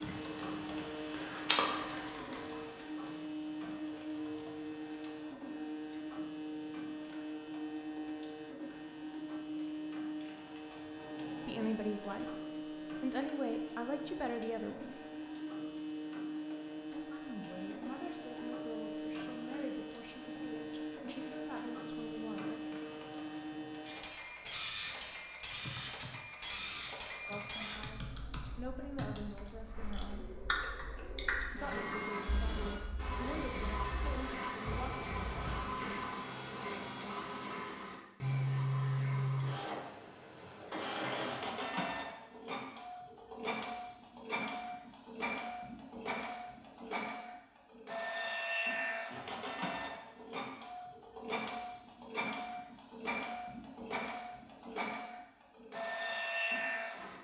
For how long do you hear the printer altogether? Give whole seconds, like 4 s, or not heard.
57 s.